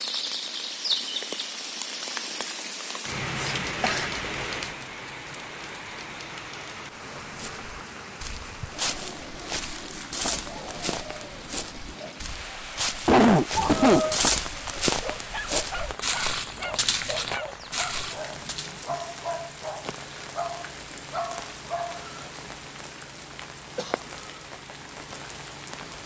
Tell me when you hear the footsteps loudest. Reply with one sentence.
The loudest moment of the footsteps is at 14 seconds.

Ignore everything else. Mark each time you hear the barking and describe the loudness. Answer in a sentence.
You can hear the barking from 15.0 to 22.1 s, at a steady volume.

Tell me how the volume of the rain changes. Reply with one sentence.
The volume of the rain goes down.